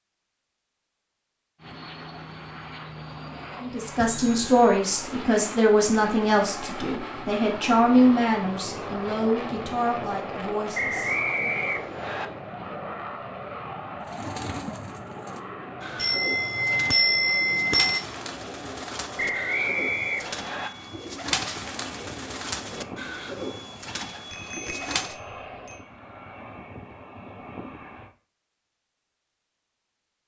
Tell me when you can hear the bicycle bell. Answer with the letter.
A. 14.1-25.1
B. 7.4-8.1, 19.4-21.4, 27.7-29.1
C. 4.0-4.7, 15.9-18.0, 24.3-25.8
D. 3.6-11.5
C.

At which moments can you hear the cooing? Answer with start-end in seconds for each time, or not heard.
14.1-25.1.